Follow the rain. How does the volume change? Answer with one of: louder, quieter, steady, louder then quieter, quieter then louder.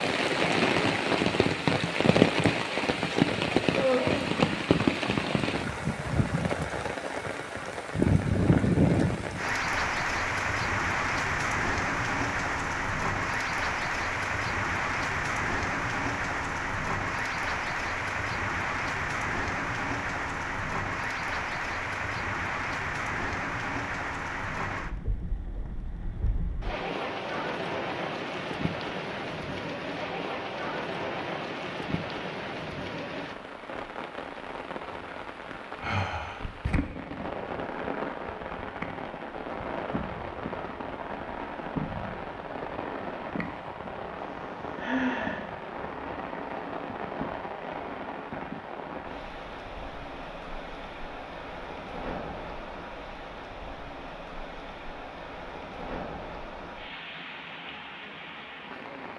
quieter.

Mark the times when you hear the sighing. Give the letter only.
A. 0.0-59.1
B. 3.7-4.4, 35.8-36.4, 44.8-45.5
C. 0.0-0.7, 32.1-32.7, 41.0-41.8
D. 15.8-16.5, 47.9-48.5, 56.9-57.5
B.